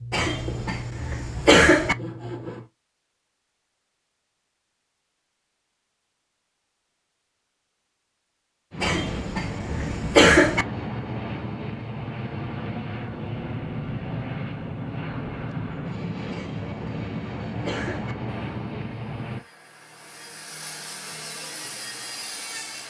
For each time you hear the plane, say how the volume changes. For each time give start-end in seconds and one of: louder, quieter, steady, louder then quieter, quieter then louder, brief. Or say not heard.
8.7-19.4 steady.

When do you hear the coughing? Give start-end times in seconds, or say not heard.
0.1-1.9, 8.8-10.7, 16.3-18.1.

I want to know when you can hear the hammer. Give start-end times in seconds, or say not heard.
not heard.